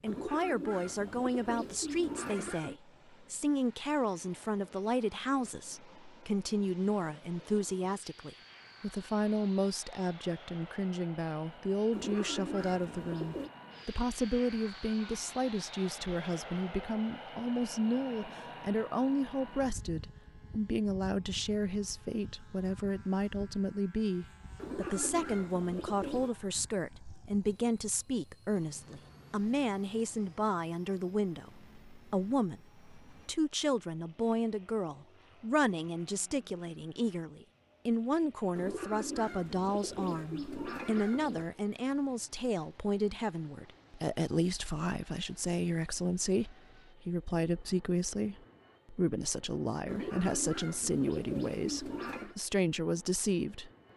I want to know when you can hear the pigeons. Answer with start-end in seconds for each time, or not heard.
0.1-2.8, 11.9-13.5, 24.6-26.4, 38.5-41.5, 49.9-52.4.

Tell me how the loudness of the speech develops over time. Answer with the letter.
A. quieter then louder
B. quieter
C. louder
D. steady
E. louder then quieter
D.